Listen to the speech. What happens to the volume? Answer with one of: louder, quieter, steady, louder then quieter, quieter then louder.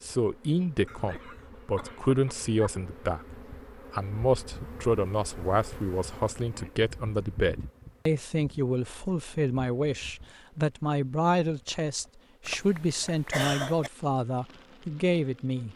steady.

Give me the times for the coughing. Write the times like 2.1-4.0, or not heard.
0.8-2.8, 12.4-13.9.